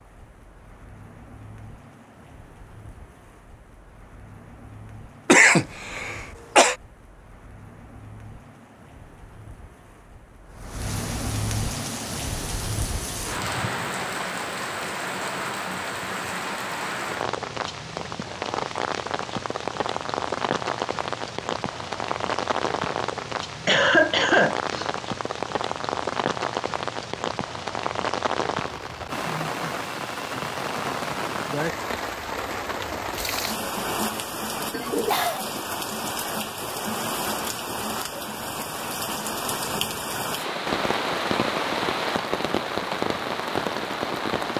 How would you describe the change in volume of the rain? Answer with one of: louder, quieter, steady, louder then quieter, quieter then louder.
louder.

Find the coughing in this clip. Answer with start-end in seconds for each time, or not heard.
5.2-6.8, 23.6-24.9, 34.7-35.5.